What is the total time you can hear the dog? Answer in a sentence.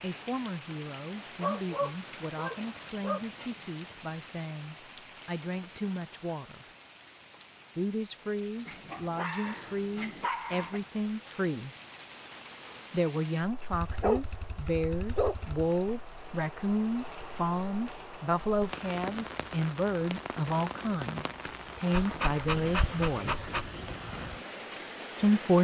The dog can be heard for 8 seconds in total.